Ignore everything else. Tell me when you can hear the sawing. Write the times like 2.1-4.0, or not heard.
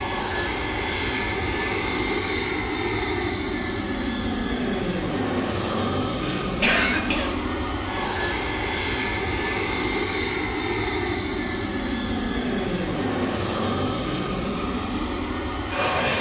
not heard.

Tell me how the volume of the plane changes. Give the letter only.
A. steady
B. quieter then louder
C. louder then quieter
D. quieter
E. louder
A.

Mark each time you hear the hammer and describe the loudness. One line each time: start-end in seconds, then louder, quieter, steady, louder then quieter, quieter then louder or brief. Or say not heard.
not heard.